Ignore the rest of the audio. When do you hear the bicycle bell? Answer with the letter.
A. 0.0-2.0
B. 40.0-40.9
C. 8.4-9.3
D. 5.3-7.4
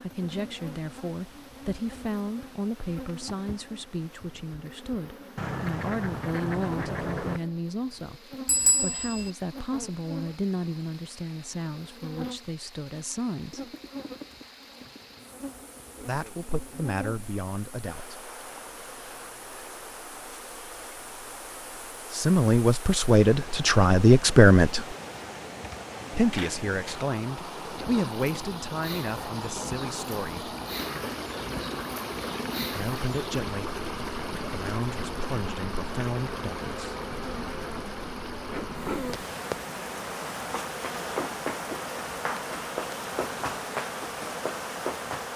C.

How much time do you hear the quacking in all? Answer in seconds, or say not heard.
2 s.